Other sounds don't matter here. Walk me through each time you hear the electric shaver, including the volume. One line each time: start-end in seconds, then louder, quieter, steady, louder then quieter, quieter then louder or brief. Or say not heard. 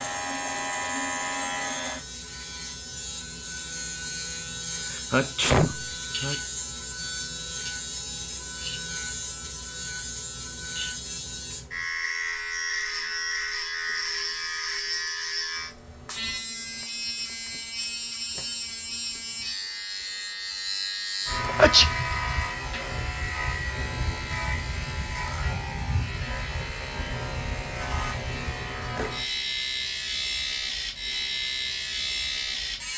0.0-32.9 steady.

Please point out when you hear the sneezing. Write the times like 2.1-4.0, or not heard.
4.9-6.3, 21.4-21.9.